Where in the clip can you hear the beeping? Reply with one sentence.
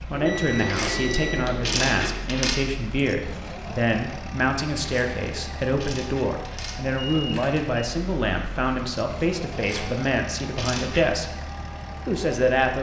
The beeping can be heard from 0.1 to 2.1 s and from 7.0 to 7.8 s.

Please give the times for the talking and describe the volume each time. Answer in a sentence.
The talking can be heard from 0.0 to 11.3 s, at a steady volume; and briefly from 12.1 to 12.7 s.